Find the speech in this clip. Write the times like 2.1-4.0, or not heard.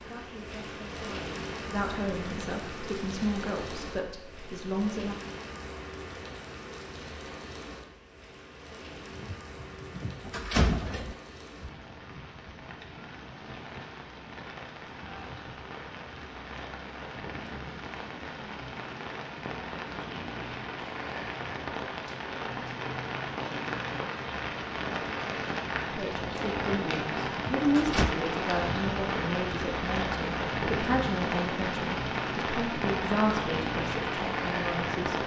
0.0-5.2, 25.9-35.2.